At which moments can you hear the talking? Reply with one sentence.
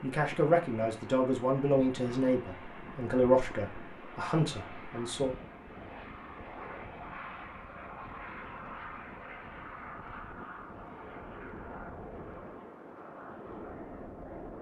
You can hear the talking from 0.0 to 5.3 s.